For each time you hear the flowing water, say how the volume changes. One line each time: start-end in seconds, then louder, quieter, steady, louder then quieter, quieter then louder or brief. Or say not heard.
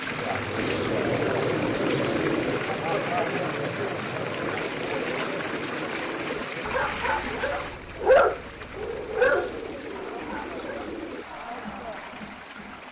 0.0-12.8 quieter.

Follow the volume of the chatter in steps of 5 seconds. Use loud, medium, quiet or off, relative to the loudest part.
loud, medium, medium.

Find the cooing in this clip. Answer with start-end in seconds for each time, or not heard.
0.6-2.6, 4.7-6.5, 9.2-11.2.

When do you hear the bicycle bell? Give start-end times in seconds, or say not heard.
not heard.